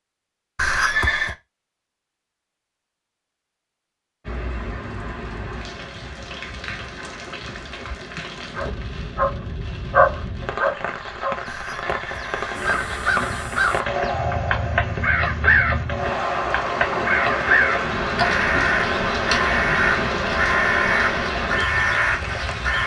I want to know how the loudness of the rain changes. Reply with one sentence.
The volume of the rain goes up.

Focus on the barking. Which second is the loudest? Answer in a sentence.
The loudest moment of the barking is at 10 seconds.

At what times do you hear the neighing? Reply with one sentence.
You can hear the neighing from 0.6 to 1.4 s and from 11.4 to 13.4 s.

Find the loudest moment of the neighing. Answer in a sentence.
The loudest moment of the neighing is at 1 second.